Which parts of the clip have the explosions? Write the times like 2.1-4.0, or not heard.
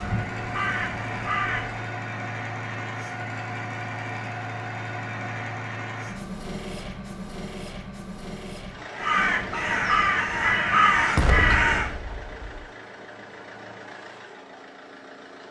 11.2-12.7.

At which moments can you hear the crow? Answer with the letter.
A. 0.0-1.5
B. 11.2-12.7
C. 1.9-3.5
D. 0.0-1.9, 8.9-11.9
D.